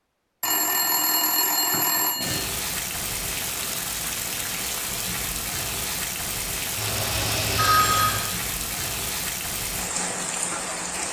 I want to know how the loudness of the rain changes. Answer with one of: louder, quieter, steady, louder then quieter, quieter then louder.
steady.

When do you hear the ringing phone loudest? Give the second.
8 s.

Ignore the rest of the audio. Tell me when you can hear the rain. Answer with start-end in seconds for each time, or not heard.
2.2-11.0.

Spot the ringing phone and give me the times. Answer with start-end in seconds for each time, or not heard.
0.4-2.5, 6.8-8.3.